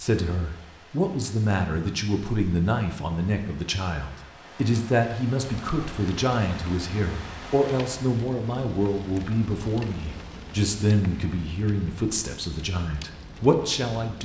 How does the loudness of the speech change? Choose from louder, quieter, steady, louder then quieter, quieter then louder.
steady.